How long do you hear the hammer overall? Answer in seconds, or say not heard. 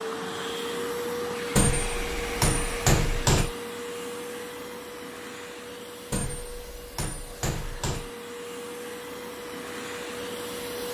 4 s.